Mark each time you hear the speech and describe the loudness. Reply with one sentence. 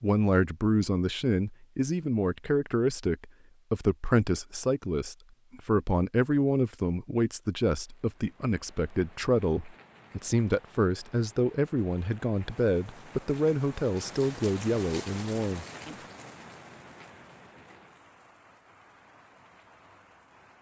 The speech can be heard from 0.0 to 15.9 s, at a steady volume.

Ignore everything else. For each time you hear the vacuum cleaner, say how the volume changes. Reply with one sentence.
You can't hear the vacuum cleaner here.